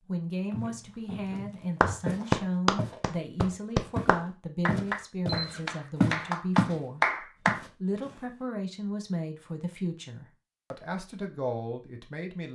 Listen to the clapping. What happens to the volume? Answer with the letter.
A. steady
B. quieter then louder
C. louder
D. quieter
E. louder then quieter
B.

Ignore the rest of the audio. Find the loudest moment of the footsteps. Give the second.
6 s.